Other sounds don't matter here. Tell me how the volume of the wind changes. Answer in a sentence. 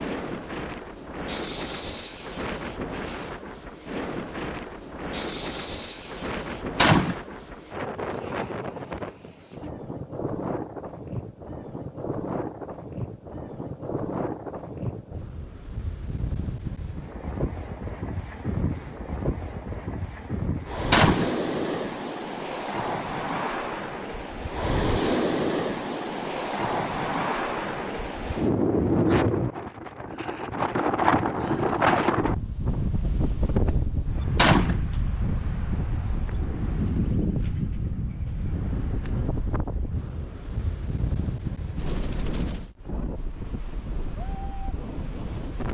The volume of the wind goes up, then down.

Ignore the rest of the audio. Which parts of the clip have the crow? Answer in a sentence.
You can't hear the crow here.